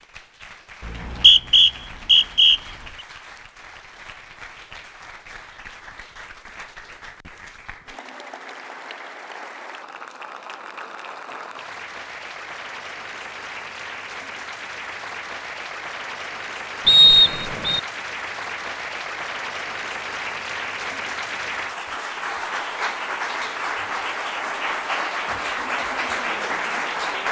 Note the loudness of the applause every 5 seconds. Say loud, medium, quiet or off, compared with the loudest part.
quiet, quiet, medium, medium, loud, loud.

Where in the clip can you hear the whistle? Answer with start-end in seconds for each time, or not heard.
0.8-2.6, 16.9-17.8.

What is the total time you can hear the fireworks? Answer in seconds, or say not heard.
not heard.